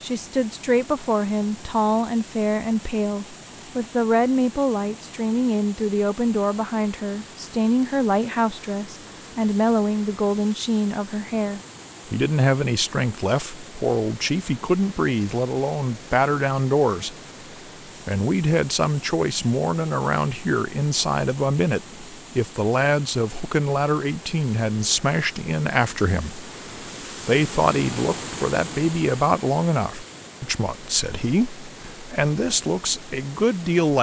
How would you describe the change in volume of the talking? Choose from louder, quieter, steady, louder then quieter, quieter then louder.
steady.